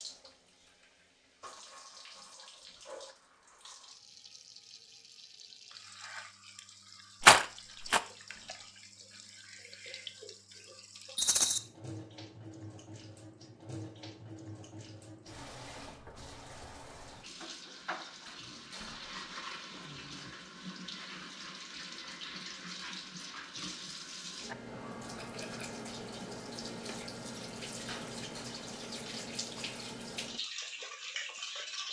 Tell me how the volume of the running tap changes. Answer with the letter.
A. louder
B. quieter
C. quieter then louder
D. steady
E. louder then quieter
A.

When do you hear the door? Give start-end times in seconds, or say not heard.
8.0-8.8, 18.2-19.3, 27.9-28.5.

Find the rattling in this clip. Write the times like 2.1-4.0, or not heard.
7.2-8.0, 11.2-11.6, 25.1-25.9.